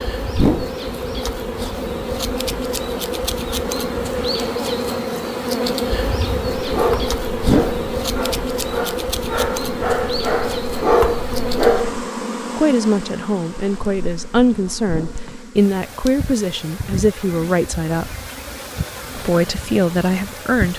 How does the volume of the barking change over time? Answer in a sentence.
The loudness of the barking goes up.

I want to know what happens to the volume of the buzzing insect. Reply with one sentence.
The loudness of the buzzing insect goes down.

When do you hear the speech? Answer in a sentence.
The speech can be heard from 12.6 to 18.1 s and from 19.1 to 20.7 s.